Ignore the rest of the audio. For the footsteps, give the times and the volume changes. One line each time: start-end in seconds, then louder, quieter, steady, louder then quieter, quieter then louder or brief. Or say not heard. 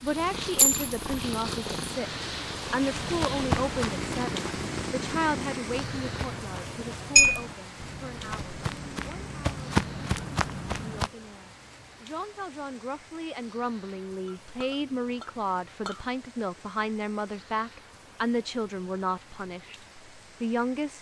3.0-11.1 quieter then louder.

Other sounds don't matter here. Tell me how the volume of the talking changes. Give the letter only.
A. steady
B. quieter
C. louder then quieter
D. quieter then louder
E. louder
D.